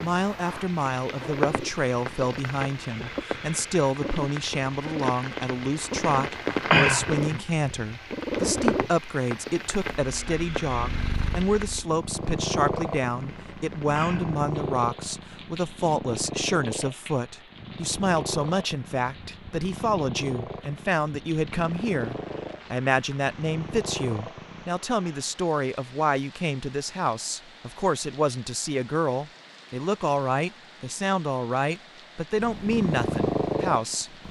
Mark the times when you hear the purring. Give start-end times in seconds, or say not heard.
0.0-24.7, 32.4-34.2.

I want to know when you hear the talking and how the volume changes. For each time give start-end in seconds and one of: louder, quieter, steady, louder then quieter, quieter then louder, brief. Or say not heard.
0.0-34.2 steady.